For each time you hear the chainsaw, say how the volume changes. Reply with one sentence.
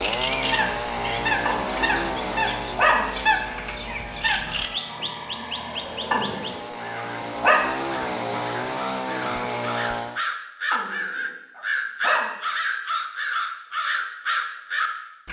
The chainsaw can be heard from 0.0 to 10.2 s, getting quieter then louder.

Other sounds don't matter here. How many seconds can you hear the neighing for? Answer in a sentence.
The neighing can be heard for 2 seconds in total.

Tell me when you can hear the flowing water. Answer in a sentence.
You can't hear the flowing water here.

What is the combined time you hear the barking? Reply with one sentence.
The barking can be heard for 5 seconds in total.